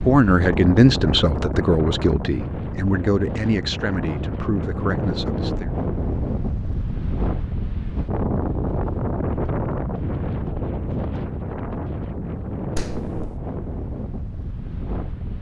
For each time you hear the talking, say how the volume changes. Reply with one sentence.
The talking can be heard from 0.0 to 5.7 s, getting quieter.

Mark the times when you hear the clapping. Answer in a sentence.
The clapping can be heard from 12.8 to 13.3 s.